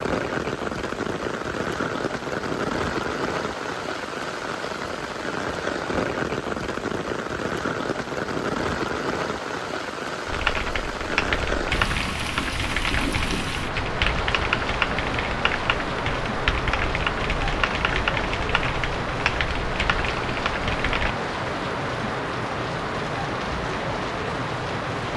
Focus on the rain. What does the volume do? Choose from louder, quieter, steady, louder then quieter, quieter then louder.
steady.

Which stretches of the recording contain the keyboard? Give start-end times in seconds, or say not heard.
10.2-21.1.